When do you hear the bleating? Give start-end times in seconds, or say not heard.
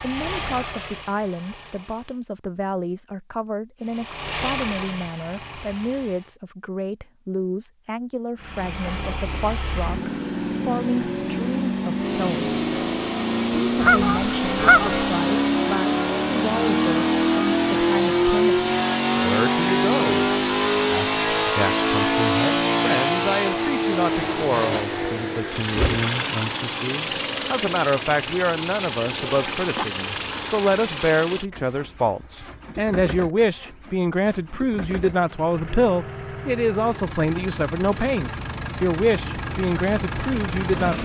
not heard.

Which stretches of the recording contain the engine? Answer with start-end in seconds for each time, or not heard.
0.0-2.2, 3.8-6.3, 8.4-40.9.